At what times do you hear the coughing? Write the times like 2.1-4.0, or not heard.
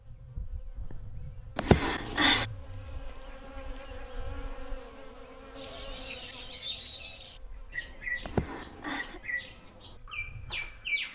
1.6-2.5, 8.2-9.2.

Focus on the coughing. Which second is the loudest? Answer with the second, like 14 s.
2 s.